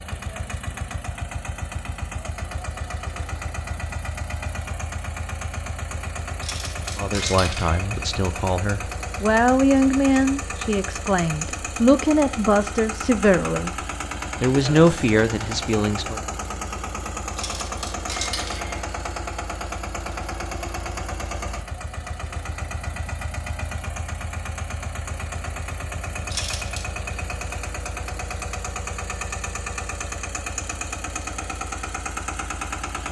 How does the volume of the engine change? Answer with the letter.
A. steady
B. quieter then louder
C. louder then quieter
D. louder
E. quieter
A.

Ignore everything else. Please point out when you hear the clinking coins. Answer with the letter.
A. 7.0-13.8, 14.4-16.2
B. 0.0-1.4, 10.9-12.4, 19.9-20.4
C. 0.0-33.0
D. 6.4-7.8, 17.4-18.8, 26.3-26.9
D.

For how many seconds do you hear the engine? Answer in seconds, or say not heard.
33 s.